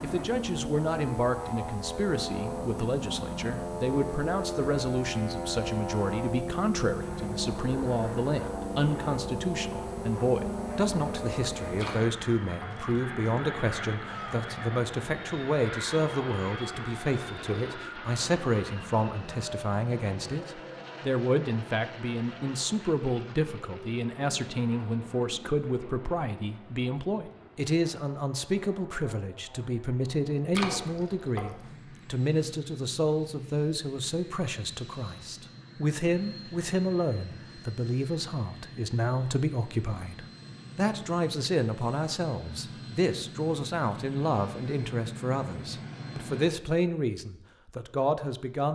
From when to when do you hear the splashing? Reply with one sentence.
You can hear the splashing from 11.8 to 12.9 s and from 30.5 to 31.6 s.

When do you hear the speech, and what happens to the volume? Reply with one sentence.
You can hear the speech from 0.0 to 48.7 s, at a steady volume.